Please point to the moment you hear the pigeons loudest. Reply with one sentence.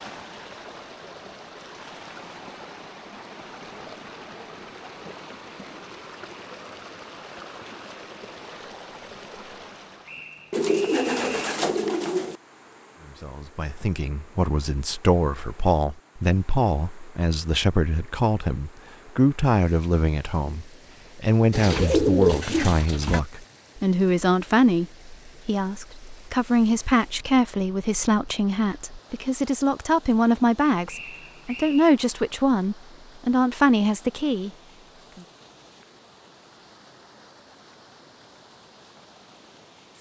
The volume of the pigeons peaks at 22 seconds.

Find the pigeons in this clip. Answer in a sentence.
You can hear the pigeons from 10.5 to 12.4 s and from 21.5 to 23.2 s.